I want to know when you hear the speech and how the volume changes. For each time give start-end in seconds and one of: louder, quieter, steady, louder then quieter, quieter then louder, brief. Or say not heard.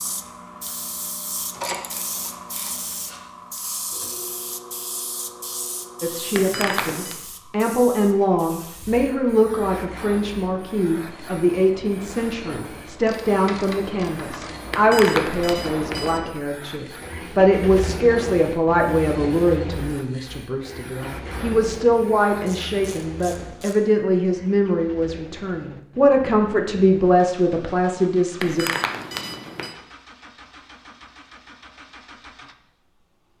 6.0-28.6 steady.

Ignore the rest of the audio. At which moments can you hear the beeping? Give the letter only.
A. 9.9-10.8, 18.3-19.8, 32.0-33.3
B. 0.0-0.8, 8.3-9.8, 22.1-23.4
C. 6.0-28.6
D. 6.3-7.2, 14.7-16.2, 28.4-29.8
D.